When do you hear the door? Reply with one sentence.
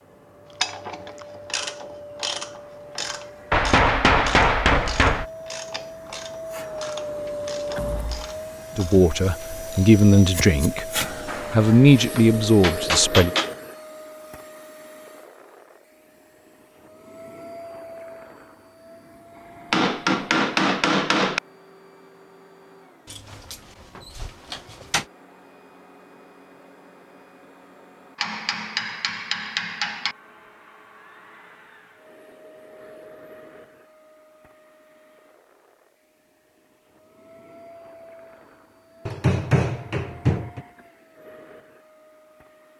You can hear the door from 7.8 to 8.3 s and from 23.1 to 25.1 s.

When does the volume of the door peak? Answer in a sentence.
The volume of the door peaks at 25 seconds.